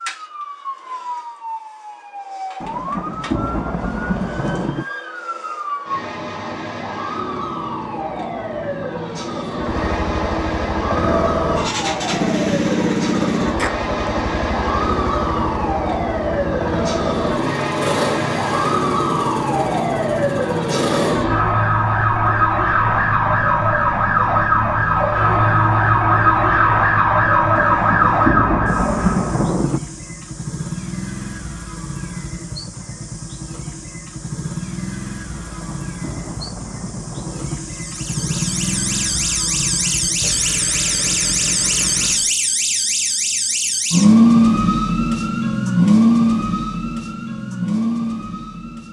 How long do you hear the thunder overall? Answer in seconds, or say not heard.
7 s.